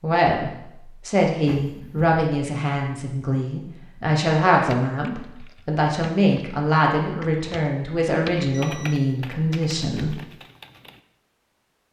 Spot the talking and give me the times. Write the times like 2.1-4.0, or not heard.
0.0-10.2.